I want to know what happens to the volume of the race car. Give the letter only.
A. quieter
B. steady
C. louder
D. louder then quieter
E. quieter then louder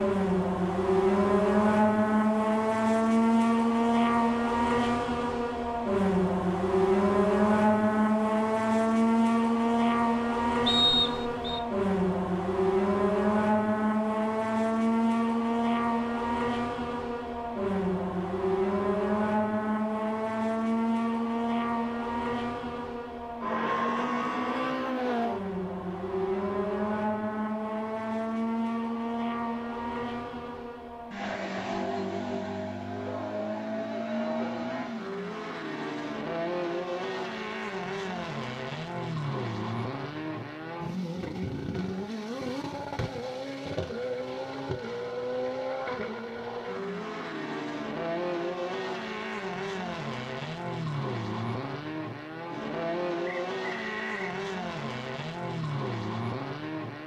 A.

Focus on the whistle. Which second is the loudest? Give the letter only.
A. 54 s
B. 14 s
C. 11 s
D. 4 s
C.